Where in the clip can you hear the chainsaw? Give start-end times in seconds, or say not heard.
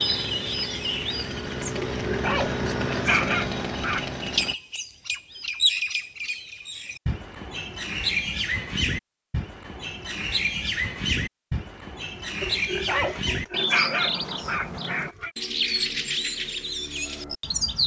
0.0-4.5.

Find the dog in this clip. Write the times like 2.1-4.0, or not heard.
1.9-4.1, 12.4-15.3.